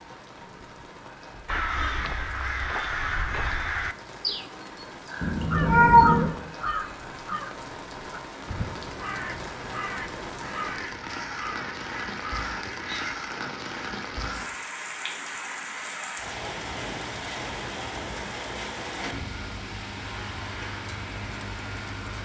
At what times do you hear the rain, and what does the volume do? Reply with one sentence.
The rain can be heard from 0.0 to 22.2 s, getting louder.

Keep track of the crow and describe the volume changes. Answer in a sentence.
The loudness of the crow goes down.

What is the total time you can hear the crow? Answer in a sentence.
The crow can be heard for 12 seconds in total.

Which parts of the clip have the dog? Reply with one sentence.
You can't hear the dog here.